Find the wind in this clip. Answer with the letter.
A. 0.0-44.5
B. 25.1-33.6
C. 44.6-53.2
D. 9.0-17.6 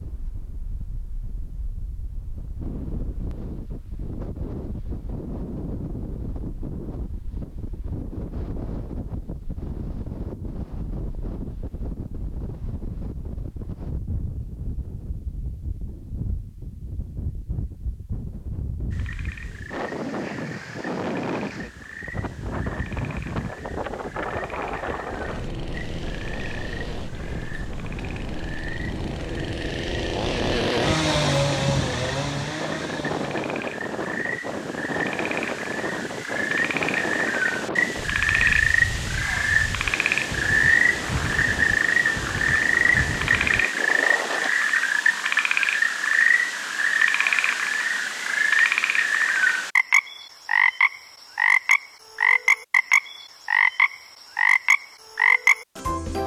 A.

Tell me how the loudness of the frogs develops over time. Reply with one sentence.
The loudness of the frogs goes up.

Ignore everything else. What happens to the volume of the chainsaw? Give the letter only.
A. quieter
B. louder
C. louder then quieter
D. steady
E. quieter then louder
C.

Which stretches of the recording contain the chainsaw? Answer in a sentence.
You can hear the chainsaw from 25.1 to 33.6 s.